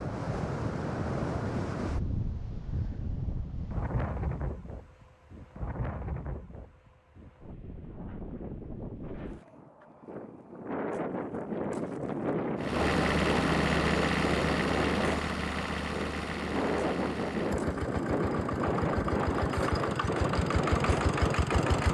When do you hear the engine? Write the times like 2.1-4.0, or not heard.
12.6-21.8.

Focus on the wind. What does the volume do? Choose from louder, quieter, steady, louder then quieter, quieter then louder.
quieter then louder.